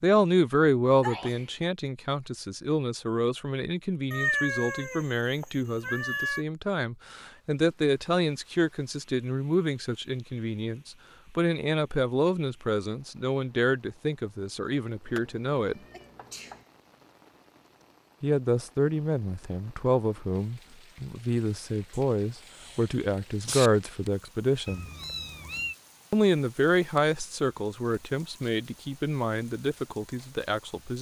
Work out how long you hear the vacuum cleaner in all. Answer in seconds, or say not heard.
not heard.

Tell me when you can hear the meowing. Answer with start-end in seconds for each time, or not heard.
4.1-6.5, 15.1-16.6, 24.6-25.8.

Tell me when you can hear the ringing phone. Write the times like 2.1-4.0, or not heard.
not heard.